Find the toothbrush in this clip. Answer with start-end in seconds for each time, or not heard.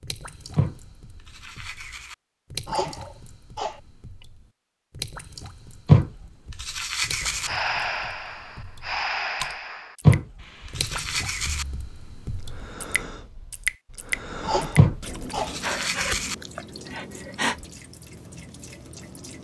0.6-2.1, 5.8-7.5, 10.1-11.7, 14.8-16.4.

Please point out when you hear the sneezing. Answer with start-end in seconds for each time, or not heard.
2.6-3.8, 14.4-15.6.